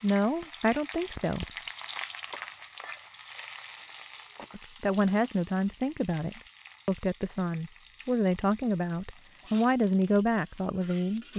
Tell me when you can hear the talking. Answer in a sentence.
You can hear the talking from 0.0 to 1.4 s and from 4.5 to 11.3 s.